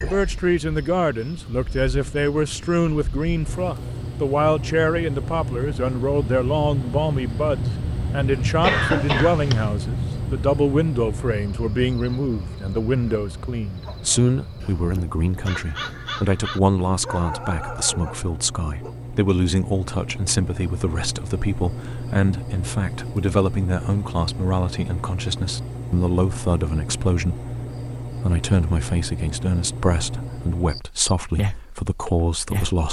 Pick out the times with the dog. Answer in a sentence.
The dog can be heard from 13.8 to 18.9 s.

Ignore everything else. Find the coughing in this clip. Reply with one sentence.
The coughing can be heard from 8.6 to 9.8 s.